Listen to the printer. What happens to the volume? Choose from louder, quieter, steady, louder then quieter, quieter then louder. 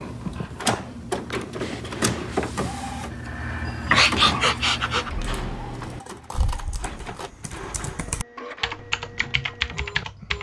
quieter.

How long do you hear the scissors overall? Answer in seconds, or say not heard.
2 s.